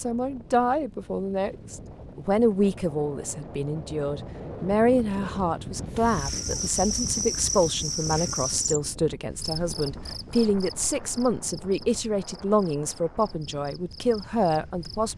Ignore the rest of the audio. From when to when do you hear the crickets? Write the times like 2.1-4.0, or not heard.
6.0-15.1.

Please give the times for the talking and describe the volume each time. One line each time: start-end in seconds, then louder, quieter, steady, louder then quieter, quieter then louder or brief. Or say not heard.
0.0-15.1 steady.